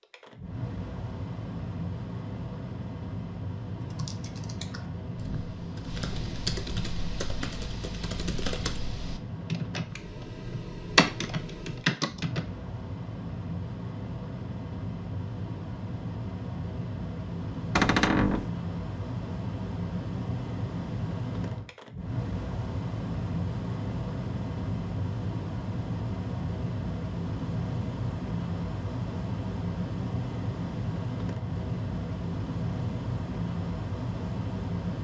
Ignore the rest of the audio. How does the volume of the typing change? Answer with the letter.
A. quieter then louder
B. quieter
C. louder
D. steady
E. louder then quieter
C.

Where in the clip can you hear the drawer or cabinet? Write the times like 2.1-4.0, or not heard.
17.8-18.5.